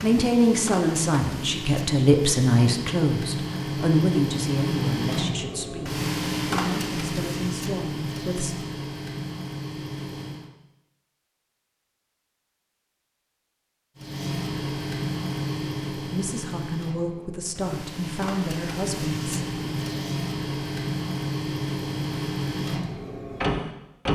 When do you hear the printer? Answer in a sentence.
The printer can be heard from 0.0 to 10.5 s and from 13.9 to 24.1 s.